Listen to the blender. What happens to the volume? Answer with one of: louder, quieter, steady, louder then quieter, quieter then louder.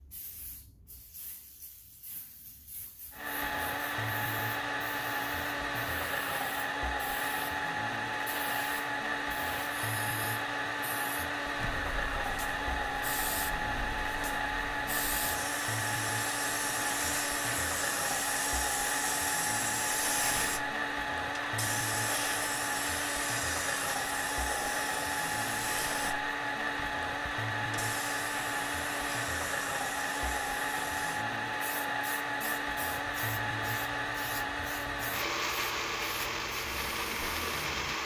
steady.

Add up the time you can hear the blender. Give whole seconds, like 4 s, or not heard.
35 s.